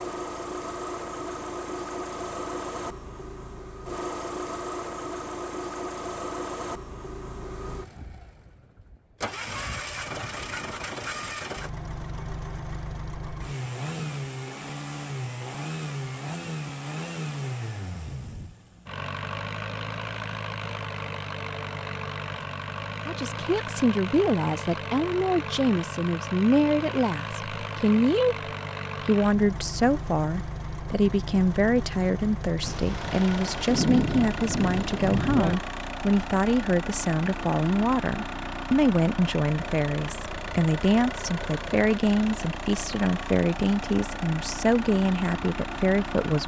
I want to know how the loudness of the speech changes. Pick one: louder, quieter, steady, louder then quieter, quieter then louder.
steady.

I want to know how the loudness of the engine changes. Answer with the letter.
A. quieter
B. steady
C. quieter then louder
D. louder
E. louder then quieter
B.